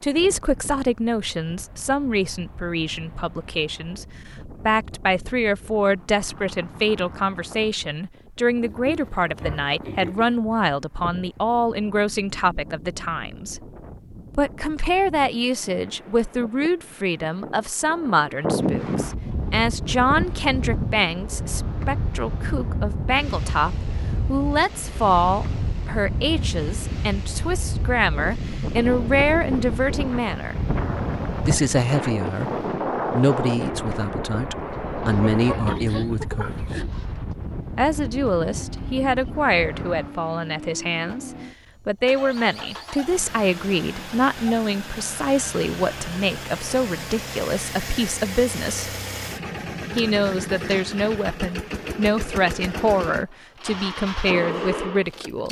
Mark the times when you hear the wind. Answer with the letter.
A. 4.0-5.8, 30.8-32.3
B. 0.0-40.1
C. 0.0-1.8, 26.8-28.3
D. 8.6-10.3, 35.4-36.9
B.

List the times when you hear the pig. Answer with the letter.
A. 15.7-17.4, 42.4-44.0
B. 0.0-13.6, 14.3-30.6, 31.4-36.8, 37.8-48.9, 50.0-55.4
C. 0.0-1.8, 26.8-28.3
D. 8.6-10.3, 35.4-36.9
D.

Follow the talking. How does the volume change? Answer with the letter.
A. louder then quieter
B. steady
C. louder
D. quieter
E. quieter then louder
B.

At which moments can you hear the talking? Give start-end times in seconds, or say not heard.
0.0-13.6, 14.3-30.6, 31.4-36.8, 37.8-48.9, 50.0-55.4.